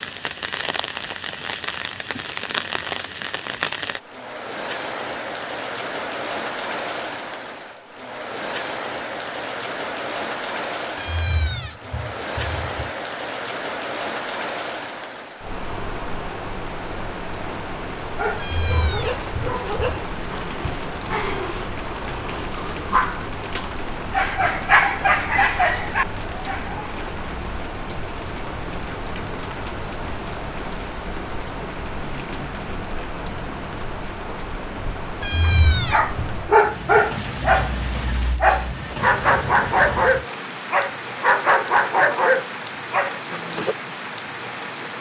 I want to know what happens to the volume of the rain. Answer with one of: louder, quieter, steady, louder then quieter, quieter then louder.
steady.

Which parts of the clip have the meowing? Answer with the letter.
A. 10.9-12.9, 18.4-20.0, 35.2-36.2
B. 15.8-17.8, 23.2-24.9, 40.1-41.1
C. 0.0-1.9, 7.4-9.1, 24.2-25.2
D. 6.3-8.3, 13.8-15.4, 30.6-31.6
A.